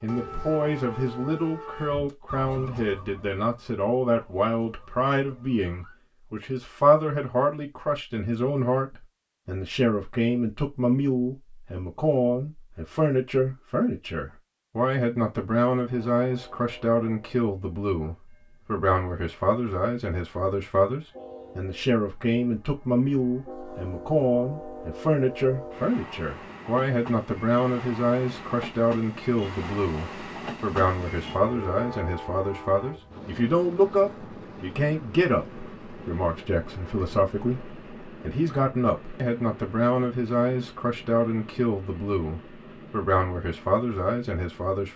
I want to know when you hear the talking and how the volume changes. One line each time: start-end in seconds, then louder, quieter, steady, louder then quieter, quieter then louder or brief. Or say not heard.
0.0-44.9 steady.